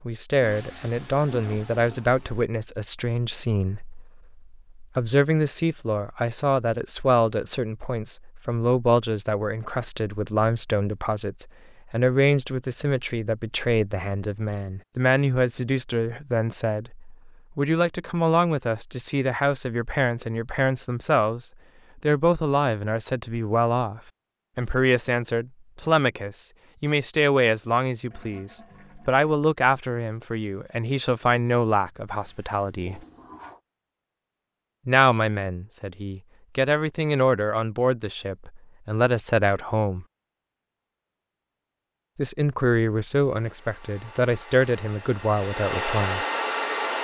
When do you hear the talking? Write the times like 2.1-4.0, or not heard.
0.0-33.0, 34.9-40.0, 42.1-46.2.